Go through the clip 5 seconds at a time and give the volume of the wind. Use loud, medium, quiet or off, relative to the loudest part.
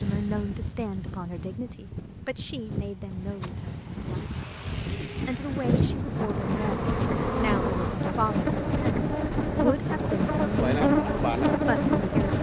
medium, loud, loud.